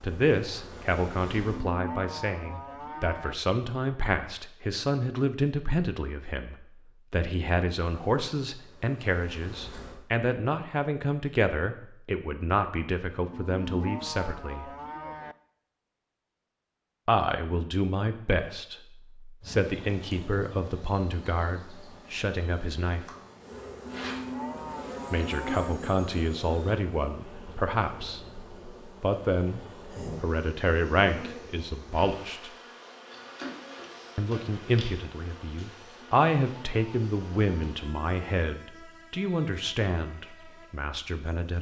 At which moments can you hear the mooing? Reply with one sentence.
The mooing can be heard from 1.4 to 3.4 s, from 13.3 to 15.3 s, from 23.9 to 25.8 s and from 36.0 to 37.5 s.